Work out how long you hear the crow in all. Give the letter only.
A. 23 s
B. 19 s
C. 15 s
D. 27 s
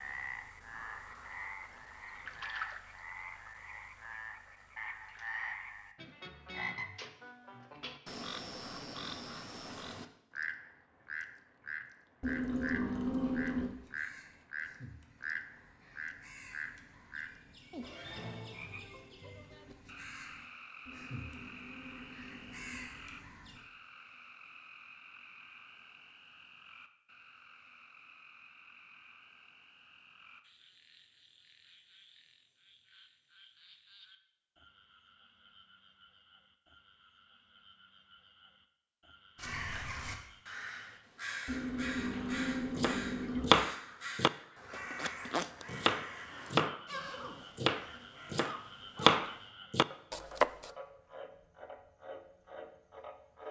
A.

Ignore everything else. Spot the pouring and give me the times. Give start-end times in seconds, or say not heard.
12.2-13.7, 20.9-22.9, 41.5-43.5.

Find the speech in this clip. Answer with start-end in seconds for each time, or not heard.
not heard.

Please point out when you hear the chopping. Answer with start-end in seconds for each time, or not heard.
42.1-46.9, 47.5-50.7.